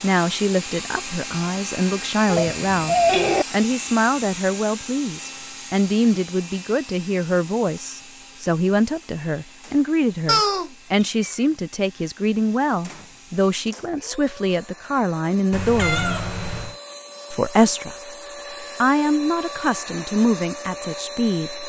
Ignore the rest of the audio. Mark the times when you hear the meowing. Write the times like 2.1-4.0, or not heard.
2.2-3.5, 10.2-11.2, 15.5-16.8.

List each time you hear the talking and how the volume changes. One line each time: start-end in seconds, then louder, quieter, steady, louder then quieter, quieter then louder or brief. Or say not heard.
0.0-16.2 steady
17.3-21.6 louder then quieter.